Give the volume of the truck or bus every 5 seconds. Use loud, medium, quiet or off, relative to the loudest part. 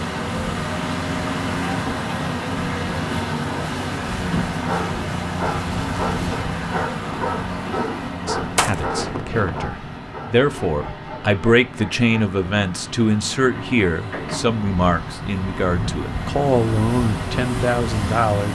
loud, loud, medium, loud.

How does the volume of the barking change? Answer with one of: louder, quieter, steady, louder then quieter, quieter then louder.
quieter.